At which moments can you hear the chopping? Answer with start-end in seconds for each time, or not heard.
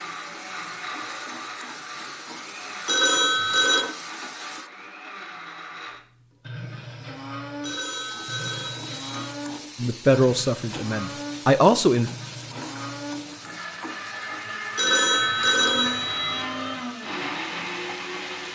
not heard.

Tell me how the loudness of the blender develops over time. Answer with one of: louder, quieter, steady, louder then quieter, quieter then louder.
louder.